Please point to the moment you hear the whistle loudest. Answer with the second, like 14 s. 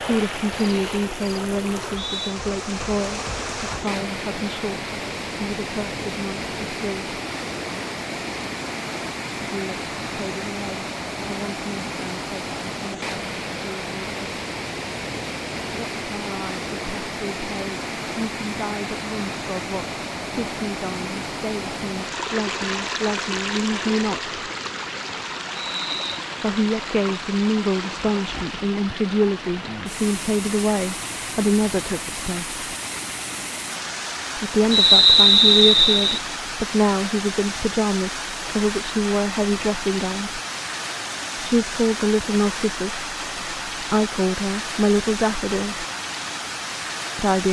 35 s.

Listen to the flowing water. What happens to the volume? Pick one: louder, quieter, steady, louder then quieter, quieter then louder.
steady.